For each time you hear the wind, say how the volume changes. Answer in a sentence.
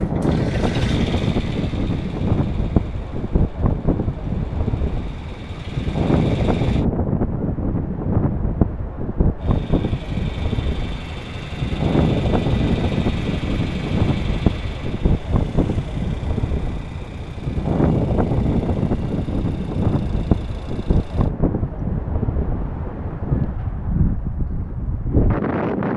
The wind can be heard from 0.0 to 25.9 s, at a steady volume.